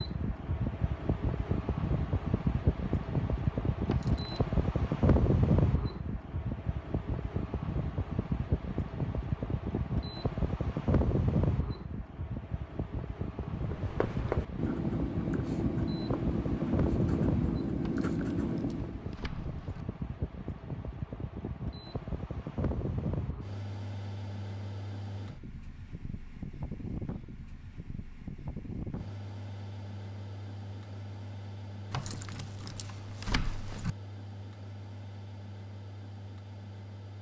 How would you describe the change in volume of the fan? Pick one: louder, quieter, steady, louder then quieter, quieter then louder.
quieter.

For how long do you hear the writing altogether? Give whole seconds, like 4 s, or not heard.
6 s.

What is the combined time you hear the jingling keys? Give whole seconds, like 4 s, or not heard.
5 s.